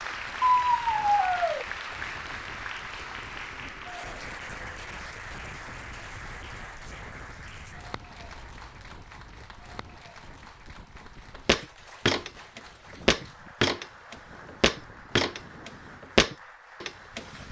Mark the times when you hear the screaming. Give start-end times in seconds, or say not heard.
0.5-1.6.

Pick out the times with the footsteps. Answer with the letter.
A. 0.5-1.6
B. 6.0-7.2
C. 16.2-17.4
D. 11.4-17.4
D.